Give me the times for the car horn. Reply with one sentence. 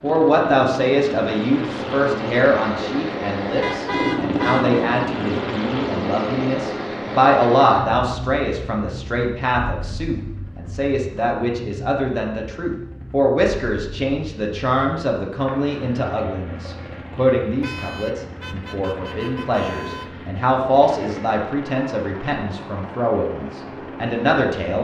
The car horn can be heard from 3.6 to 4.8 s and from 17.6 to 20.3 s.